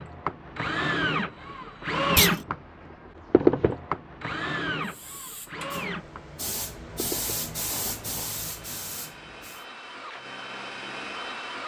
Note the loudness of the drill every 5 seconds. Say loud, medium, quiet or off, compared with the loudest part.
loud, quiet, medium.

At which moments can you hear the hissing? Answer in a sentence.
The hissing can be heard from 4.8 to 9.7 s.